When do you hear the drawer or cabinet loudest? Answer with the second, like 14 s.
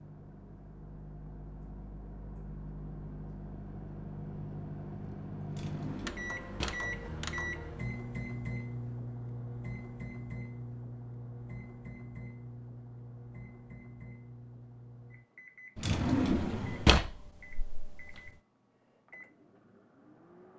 17 s.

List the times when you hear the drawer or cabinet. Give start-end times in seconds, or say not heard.
5.5-6.9, 15.8-18.3.